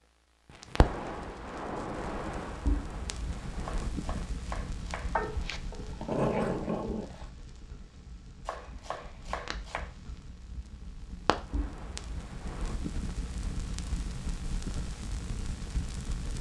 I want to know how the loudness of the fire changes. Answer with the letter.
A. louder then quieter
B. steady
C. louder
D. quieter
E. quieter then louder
E.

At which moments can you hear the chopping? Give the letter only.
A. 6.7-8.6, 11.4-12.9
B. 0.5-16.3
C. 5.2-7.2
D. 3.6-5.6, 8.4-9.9
D.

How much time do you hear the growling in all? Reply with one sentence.
The growling can be heard for 2 seconds in total.